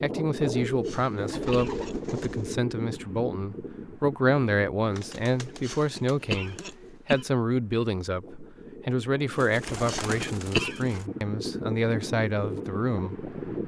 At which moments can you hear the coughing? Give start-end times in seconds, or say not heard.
0.8-1.9, 5.6-7.2, 9.8-10.9.